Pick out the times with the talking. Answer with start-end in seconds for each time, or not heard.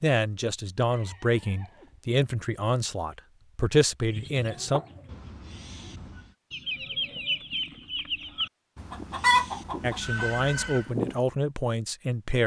0.0-4.8, 9.8-12.4.